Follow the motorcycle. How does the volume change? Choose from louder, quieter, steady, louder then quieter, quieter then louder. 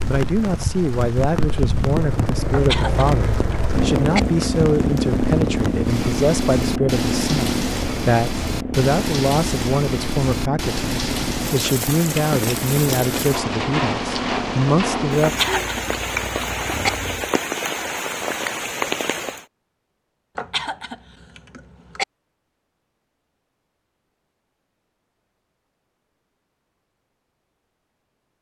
quieter.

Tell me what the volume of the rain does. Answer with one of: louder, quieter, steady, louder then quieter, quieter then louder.
steady.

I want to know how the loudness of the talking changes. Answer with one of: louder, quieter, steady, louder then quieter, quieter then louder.
steady.